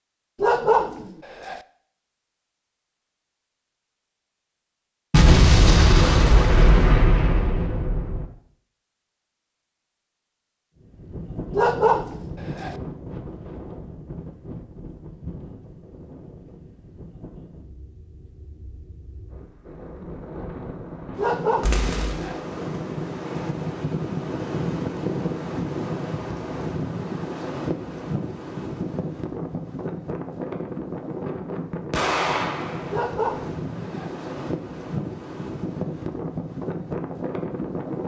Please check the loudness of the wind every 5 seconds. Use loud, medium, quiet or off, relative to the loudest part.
off, off, medium, quiet, loud, loud, loud, loud.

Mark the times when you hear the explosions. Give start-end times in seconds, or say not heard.
5.1-8.2, 21.6-22.4, 31.9-33.0.